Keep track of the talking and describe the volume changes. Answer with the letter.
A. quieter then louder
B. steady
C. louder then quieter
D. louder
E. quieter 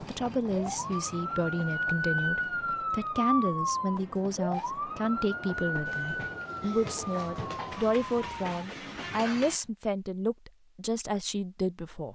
B.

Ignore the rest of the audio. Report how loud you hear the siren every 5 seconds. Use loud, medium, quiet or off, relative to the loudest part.
loud, medium, off.